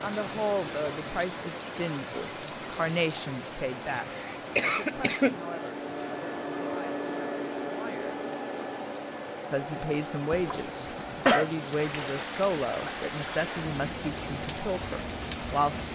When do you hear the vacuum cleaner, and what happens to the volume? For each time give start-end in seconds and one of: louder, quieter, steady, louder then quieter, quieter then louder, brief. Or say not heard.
0.1-15.9 louder then quieter.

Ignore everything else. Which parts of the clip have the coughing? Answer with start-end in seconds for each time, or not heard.
3.9-5.3, 10.3-11.4.